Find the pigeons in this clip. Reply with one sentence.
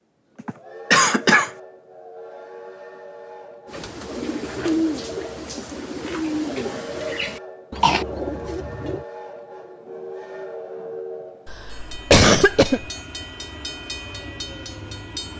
The pigeons can be heard from 3.6 to 9.1 s.